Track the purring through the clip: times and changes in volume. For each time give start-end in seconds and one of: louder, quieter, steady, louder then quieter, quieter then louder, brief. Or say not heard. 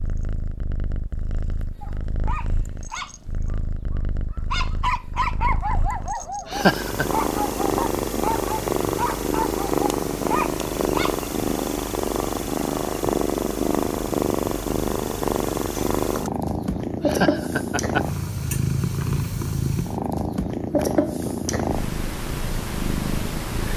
0.0-23.7 louder.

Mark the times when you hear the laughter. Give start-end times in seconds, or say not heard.
6.5-7.0, 17.0-18.1.